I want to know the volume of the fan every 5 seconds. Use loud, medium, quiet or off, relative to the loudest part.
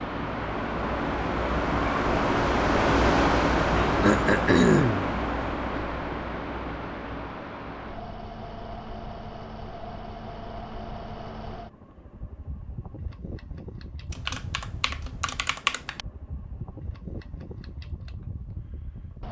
loud, medium, quiet, quiet.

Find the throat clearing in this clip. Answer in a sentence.
You can hear the throat clearing from 4.0 to 5.0 s.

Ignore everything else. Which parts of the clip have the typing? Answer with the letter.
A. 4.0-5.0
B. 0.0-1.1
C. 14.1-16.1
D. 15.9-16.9
C.